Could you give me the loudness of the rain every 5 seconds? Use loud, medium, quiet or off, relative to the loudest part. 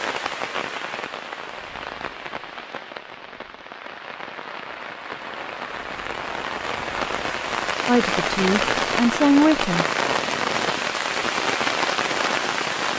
medium, loud, loud.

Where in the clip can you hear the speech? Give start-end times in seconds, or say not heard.
7.8-9.8.